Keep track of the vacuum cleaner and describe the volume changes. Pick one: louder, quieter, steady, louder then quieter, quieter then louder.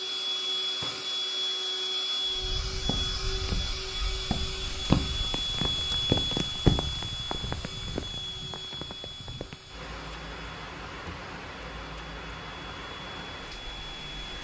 quieter.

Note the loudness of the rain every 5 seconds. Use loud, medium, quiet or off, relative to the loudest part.
medium, loud, loud.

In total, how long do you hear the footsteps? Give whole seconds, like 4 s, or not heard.
5 s.